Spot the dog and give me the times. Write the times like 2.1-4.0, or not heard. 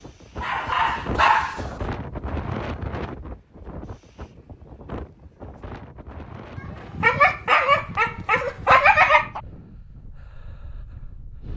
0.4-1.8, 6.5-9.4.